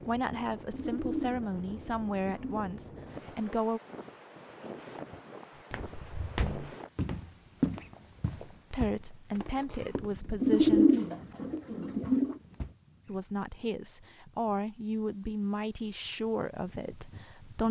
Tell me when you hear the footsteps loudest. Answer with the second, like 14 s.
8 s.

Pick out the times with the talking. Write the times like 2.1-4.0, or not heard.
0.1-3.8, 8.2-10.9, 13.1-17.6.